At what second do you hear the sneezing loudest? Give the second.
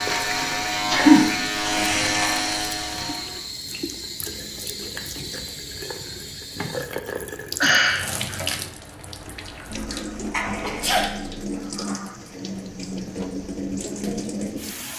1 s.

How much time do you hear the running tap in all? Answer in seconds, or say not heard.
15 s.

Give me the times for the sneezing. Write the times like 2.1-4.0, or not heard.
0.9-1.3, 7.6-8.1, 10.2-11.1.